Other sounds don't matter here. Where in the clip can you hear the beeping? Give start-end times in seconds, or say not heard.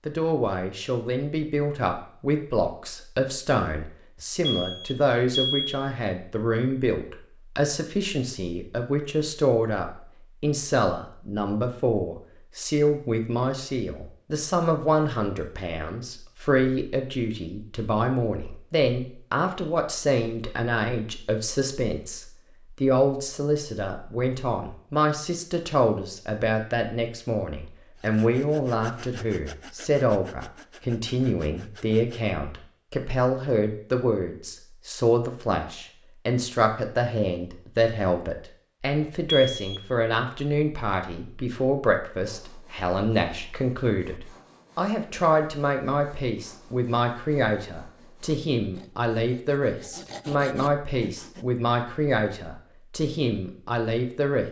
4.5-5.8, 39.2-39.8.